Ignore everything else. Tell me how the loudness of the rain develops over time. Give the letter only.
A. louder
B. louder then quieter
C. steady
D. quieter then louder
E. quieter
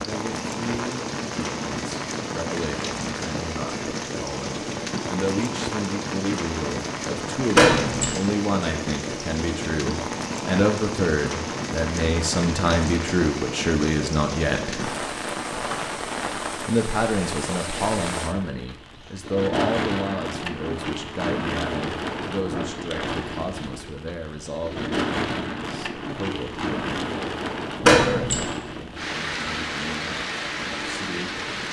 C.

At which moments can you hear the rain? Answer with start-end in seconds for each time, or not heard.
0.0-31.6.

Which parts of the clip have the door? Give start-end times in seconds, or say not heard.
7.5-8.2, 27.8-28.4.